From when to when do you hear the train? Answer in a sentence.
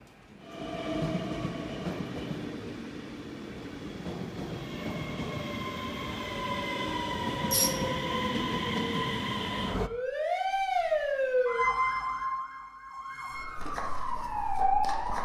You can hear the train from 0.0 to 9.9 s.